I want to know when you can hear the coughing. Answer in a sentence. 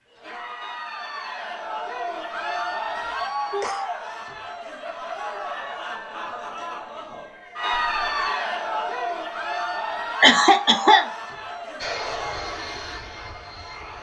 You can hear the coughing from 3.0 to 3.9 s and from 10.2 to 11.1 s.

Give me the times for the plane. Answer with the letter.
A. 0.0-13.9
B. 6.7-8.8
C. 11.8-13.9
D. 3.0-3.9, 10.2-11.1
C.